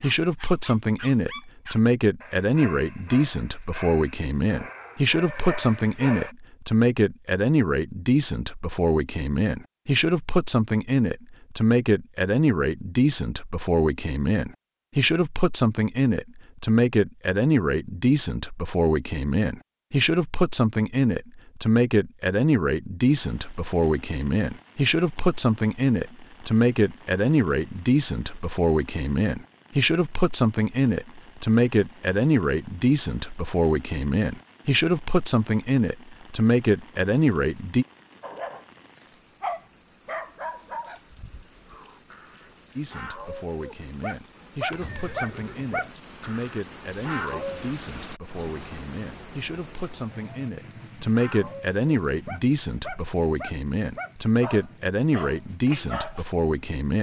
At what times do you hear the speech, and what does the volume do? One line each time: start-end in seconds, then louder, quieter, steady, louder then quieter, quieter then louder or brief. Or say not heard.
0.0-37.9 steady
42.8-56.9 louder.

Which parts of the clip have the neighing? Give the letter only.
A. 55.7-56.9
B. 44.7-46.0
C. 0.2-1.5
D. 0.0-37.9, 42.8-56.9
B.